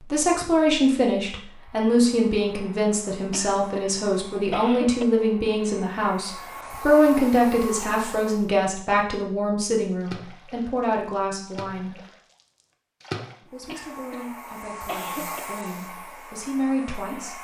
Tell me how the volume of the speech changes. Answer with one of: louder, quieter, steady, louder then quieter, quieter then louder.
quieter.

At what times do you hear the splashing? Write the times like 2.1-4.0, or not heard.
10.0-13.3.